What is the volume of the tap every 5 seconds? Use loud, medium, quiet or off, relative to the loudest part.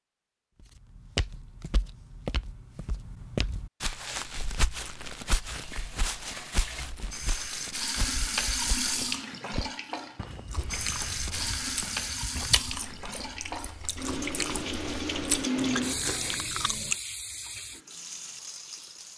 off, loud, loud, loud.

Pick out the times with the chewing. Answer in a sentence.
The chewing can be heard from 10.4 to 16.9 s.